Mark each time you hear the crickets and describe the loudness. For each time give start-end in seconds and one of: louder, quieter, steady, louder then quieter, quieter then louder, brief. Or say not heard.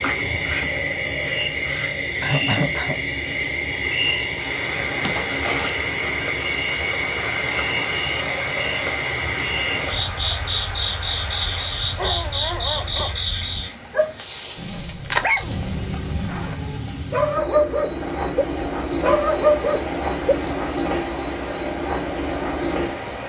0.0-23.2 steady.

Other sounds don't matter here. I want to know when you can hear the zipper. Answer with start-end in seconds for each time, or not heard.
5.0-5.8, 14.9-16.6.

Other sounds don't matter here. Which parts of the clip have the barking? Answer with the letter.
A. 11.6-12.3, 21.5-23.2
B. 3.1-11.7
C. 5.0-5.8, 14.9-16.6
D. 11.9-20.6
D.